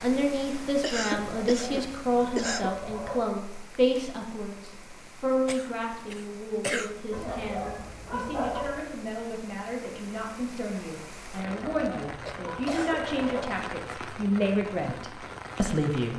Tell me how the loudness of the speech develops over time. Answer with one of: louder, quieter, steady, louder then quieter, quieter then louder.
quieter then louder.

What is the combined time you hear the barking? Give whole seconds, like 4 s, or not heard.
6 s.